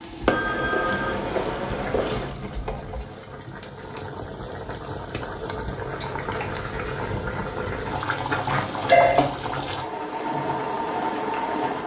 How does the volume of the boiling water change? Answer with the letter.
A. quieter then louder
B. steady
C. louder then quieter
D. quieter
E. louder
E.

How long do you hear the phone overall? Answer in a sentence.
The phone can be heard for 3 seconds in total.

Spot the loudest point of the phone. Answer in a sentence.
The volume of the phone peaks at 9 seconds.